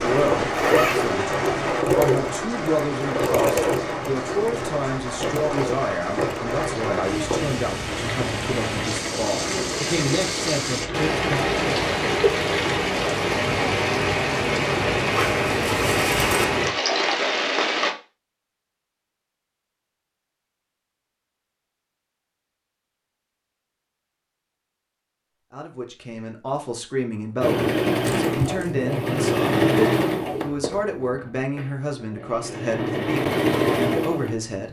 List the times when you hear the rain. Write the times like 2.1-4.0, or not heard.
0.0-17.9.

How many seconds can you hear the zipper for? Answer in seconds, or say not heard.
3 s.